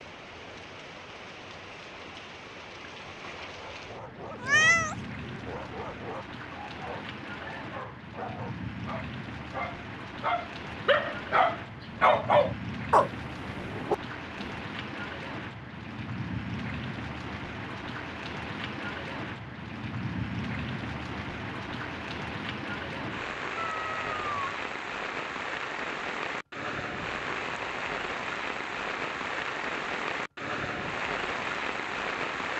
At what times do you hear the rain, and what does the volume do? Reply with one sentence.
You can hear the rain from 0.0 to 32.5 s, getting louder.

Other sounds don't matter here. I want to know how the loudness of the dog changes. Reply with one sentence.
The loudness of the dog goes up.